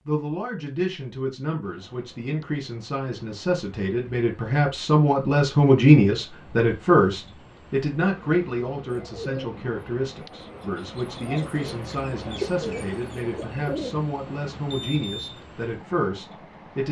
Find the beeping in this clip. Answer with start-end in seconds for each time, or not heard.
14.7-15.4.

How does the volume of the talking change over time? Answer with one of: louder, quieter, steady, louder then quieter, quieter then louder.
louder then quieter.